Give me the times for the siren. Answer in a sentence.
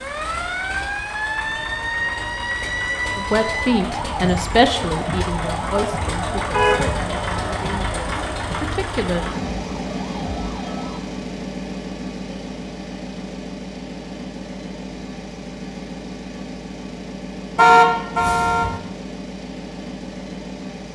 You can hear the siren from 0.0 to 11.0 s.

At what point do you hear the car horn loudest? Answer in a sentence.
The loudest moment of the car horn is at 18 seconds.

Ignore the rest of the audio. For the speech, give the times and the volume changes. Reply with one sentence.
The speech can be heard from 3.1 to 9.2 s, getting quieter.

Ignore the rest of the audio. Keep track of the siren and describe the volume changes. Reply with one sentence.
The loudness of the siren goes down.